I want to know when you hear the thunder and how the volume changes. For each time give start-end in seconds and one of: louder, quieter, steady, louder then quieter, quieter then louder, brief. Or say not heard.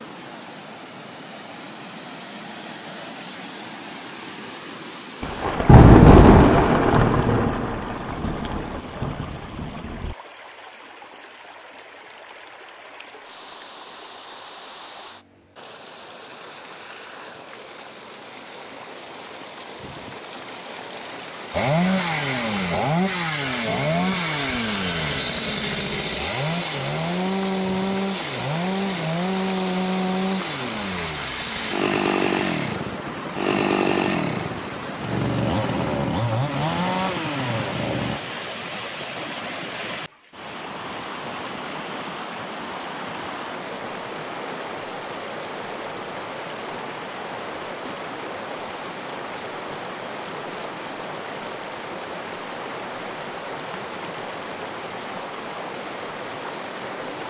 5.2-10.2 quieter.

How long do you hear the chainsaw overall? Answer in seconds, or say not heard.
17 s.